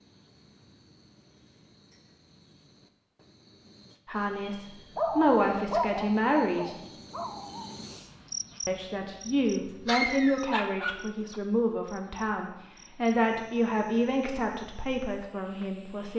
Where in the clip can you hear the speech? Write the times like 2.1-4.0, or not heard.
4.0-6.8, 8.7-16.1.